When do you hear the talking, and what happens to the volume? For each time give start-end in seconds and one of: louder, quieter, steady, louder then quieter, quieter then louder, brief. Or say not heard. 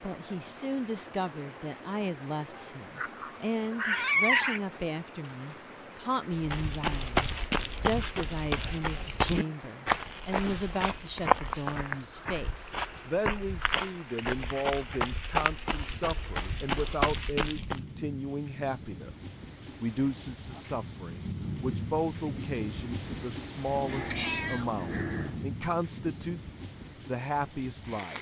0.0-28.1 steady.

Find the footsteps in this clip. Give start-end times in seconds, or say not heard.
6.3-17.9.